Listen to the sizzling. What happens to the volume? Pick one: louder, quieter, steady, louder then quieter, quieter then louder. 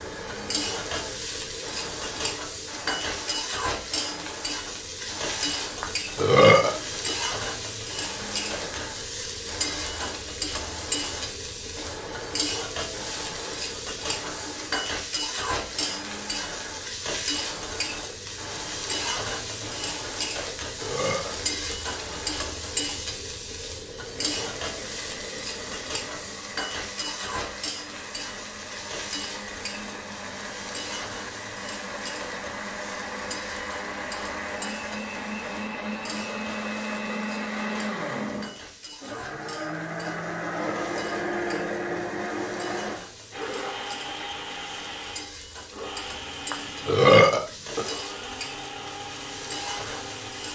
quieter.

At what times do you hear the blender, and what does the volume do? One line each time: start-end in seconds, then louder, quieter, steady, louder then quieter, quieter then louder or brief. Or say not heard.
0.0-22.9 steady
24.1-50.5 louder then quieter.